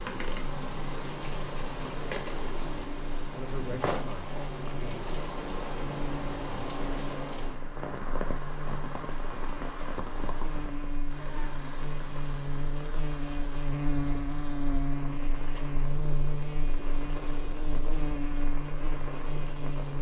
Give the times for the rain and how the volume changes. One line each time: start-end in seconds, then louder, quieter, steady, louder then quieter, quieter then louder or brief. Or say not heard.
0.0-19.9 quieter.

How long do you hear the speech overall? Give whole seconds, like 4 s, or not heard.
2 s.